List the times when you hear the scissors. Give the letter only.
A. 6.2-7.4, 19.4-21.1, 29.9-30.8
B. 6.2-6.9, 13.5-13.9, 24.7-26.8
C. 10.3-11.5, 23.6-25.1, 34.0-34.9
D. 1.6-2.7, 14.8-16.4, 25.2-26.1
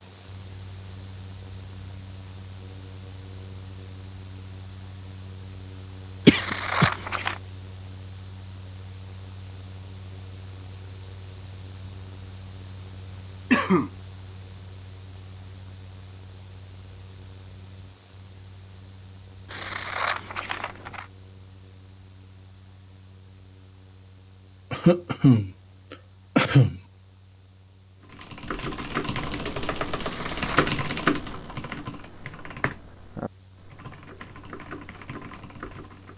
A.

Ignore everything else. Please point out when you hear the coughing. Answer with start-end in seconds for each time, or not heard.
6.2-6.9, 13.5-13.9, 24.7-26.8.